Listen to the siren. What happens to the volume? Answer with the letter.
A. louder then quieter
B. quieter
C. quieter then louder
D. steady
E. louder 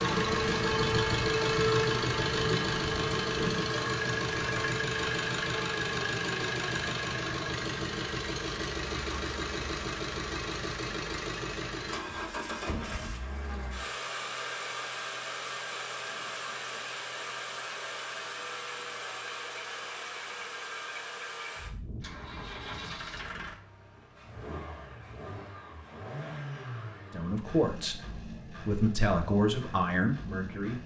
B.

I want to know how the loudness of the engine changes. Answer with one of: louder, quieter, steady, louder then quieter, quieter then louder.
quieter.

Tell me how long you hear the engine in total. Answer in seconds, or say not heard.
31 s.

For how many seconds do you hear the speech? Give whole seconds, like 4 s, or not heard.
4 s.